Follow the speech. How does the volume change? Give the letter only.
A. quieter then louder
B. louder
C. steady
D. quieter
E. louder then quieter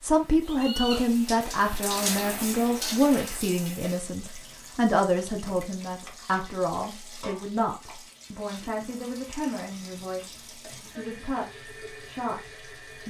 D.